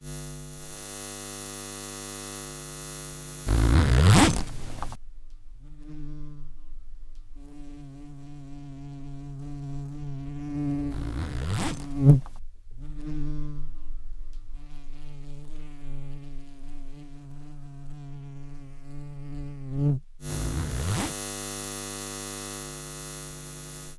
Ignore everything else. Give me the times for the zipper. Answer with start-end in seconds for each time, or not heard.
3.5-5.0, 10.9-12.4, 20.2-21.1.